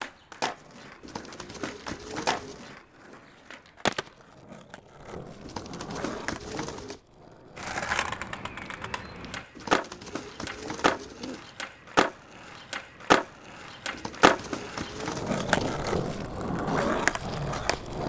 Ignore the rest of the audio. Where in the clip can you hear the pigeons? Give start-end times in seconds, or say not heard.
1.0-2.6, 5.4-7.0, 9.6-11.5, 13.9-16.1.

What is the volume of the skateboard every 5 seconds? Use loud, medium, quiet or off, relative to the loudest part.
medium, medium, loud, loud.